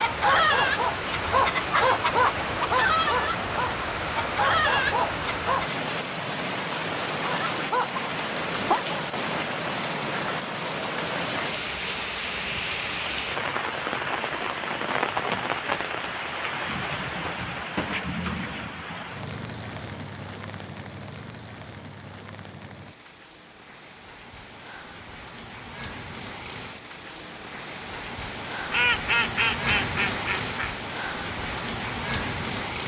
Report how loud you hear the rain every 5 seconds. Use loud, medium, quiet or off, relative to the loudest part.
loud, loud, loud, loud, quiet, medium, loud.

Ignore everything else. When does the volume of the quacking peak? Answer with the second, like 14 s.
29 s.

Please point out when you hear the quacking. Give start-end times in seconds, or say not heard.
28.7-30.8.